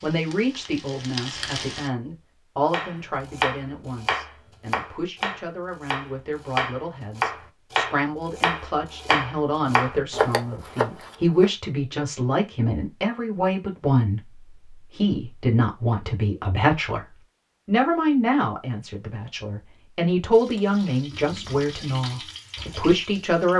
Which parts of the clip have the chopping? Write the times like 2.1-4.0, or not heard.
2.7-11.4.